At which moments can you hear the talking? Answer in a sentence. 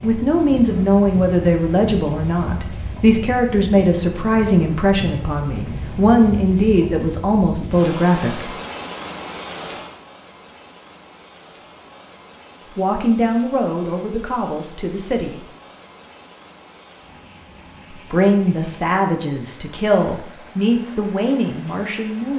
You can hear the talking from 0.0 to 8.5 s, from 12.8 to 15.4 s and from 17.9 to 22.3 s.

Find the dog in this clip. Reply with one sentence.
You can't hear the dog here.